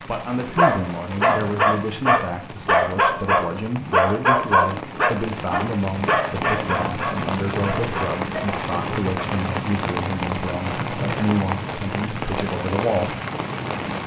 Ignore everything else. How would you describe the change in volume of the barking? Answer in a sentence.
The loudness of the barking goes down.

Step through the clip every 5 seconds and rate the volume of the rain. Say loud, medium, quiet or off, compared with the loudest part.
medium, loud, loud.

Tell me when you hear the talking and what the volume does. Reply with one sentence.
The talking can be heard from 0.1 to 13.2 s, at a steady volume.